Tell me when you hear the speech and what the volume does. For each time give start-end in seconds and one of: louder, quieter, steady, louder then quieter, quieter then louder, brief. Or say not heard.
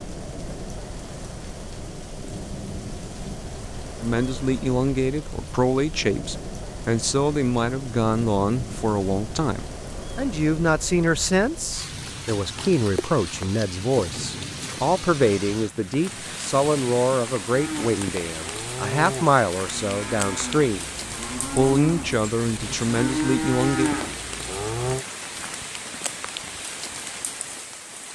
4.0-20.9 steady
21.4-23.9 brief.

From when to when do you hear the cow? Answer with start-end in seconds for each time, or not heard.
17.5-25.1.